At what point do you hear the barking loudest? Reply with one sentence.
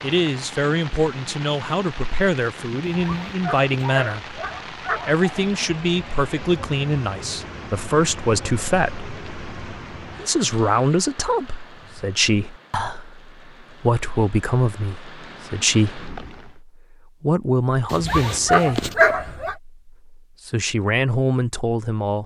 The volume of the barking peaks at 19 seconds.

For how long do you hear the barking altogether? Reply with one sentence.
You can hear the barking for 4 seconds altogether.